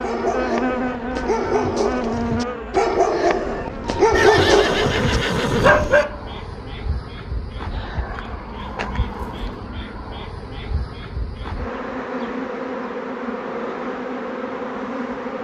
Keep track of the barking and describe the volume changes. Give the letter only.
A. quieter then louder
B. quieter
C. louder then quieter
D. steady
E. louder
E.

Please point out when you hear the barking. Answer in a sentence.
You can hear the barking from 0.0 to 6.2 s.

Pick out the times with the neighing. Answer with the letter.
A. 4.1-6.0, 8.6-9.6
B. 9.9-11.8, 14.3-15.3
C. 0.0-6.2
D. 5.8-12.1
A.